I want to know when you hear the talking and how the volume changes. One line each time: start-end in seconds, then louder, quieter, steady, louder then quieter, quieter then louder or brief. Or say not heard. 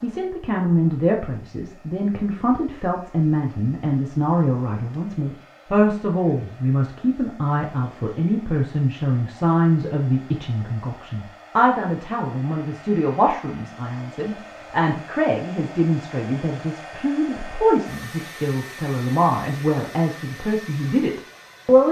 0.0-21.8 steady.